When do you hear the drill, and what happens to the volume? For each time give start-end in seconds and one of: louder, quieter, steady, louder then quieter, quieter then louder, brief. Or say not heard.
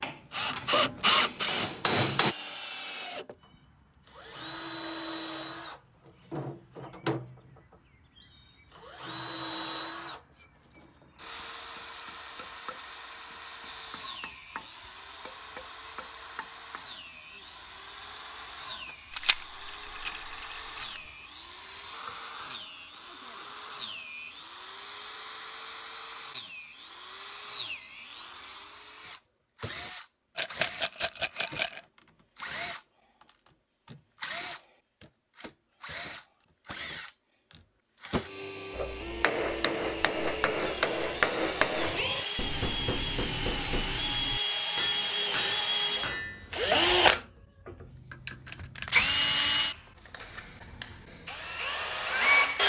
0.3-52.6 quieter then louder.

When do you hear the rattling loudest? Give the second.
31 s.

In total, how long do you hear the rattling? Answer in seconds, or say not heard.
3 s.